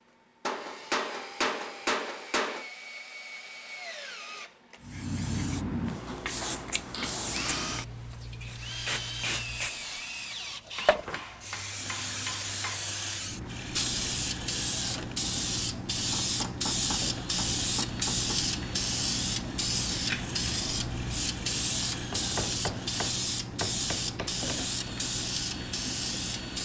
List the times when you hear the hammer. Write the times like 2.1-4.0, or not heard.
0.5-2.7, 6.9-8.1, 10.8-12.8, 16.1-18.4, 22.1-24.6.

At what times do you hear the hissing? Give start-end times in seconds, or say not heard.
4.8-26.5.